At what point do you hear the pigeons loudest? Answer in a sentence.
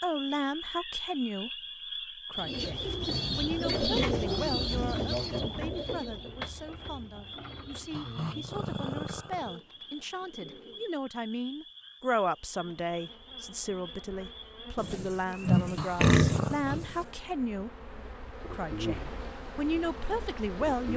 The volume of the pigeons peaks at 4 seconds.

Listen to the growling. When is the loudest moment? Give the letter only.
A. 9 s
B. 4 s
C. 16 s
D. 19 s
C.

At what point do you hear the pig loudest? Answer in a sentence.
The loudest moment of the pig is at 16 seconds.